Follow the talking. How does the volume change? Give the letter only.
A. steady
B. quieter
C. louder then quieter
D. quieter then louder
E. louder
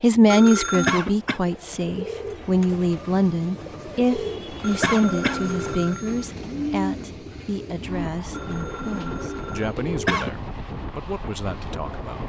B.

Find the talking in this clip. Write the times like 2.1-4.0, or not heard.
0.0-12.2.